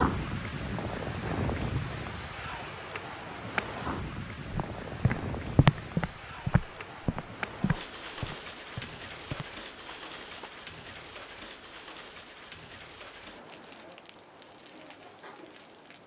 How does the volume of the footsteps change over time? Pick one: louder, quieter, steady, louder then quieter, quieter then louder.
quieter.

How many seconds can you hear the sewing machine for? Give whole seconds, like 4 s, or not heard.
not heard.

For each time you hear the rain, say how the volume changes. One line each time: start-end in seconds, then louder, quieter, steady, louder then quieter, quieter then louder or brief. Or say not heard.
0.0-16.0 quieter.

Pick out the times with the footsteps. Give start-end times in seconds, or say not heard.
4.5-10.5.